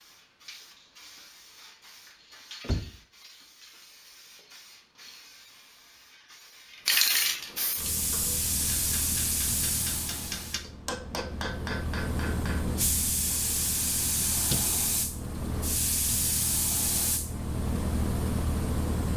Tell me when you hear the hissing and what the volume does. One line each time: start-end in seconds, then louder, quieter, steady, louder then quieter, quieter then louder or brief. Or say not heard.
0.0-19.1 louder.